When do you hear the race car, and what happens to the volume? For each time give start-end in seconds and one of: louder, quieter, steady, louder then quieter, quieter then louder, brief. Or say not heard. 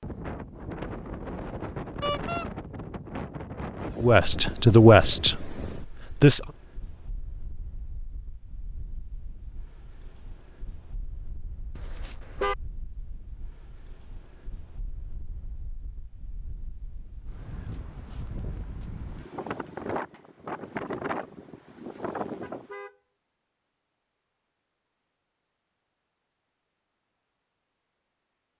not heard.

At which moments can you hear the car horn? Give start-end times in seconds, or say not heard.
2.0-2.5, 11.8-12.6, 22.4-22.9.